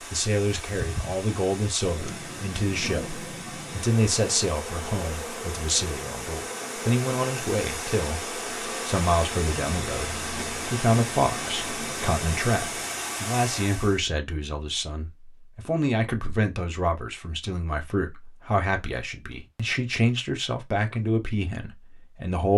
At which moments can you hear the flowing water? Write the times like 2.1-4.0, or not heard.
0.0-14.0.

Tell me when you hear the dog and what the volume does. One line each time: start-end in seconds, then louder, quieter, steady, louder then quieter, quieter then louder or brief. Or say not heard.
not heard.